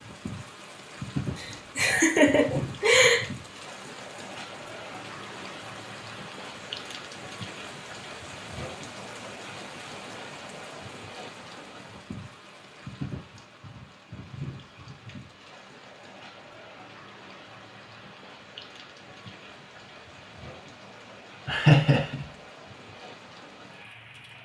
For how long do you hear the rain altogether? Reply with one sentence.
You can hear the rain for 24 seconds altogether.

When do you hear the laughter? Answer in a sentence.
The laughter can be heard from 1.4 to 3.2 s and from 21.4 to 22.2 s.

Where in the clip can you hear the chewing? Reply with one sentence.
The chewing can't be heard in this clip.